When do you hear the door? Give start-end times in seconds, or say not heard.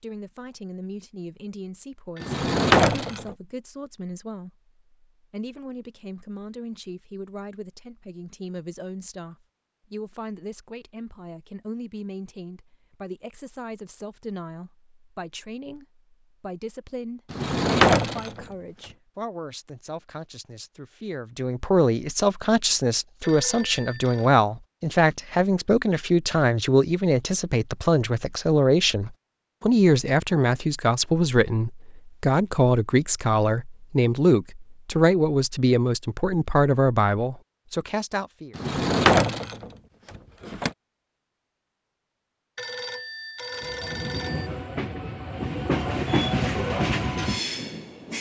2.2-3.4, 17.3-18.4, 38.5-40.7.